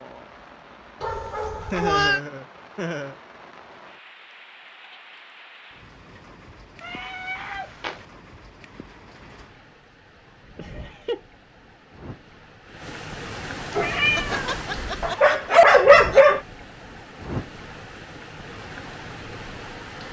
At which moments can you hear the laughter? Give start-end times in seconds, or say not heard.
1.6-3.1, 10.6-11.2, 13.9-16.2.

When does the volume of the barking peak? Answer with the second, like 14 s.
16 s.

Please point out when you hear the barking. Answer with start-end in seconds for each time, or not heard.
13.8-16.4.